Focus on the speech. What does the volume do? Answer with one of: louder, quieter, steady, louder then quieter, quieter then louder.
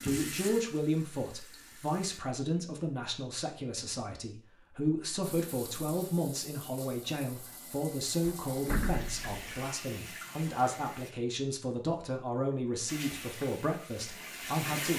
steady.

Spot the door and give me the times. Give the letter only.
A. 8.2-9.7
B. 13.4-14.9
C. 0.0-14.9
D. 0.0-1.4
A.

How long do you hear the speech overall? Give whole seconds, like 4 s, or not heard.
15 s.